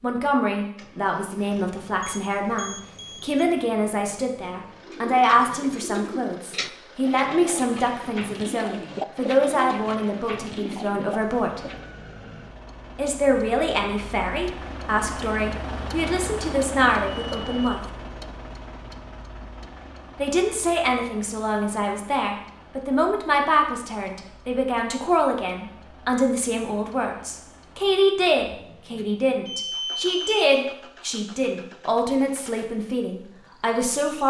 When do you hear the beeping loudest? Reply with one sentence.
The loudest moment of the beeping is at 30 seconds.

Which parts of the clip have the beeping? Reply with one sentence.
The beeping can be heard from 2.0 to 3.4 s, from 17.2 to 17.7 s and from 28.9 to 30.4 s.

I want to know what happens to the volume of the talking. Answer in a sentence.
The loudness of the talking stays about the same.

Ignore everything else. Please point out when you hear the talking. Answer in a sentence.
You can hear the talking from 0.0 to 11.6 s, from 12.9 to 17.8 s and from 20.1 to 34.2 s.